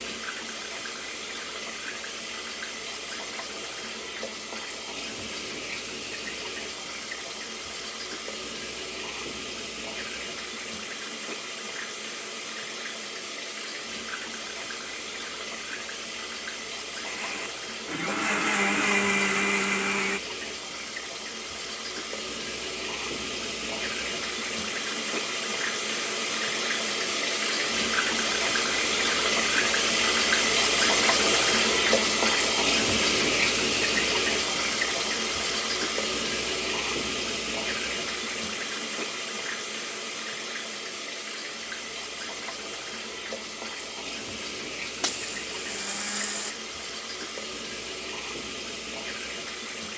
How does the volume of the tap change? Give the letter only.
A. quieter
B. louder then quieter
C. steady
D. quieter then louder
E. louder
B.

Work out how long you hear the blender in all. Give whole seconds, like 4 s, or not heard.
5 s.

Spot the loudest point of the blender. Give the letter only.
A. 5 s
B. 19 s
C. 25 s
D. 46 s
B.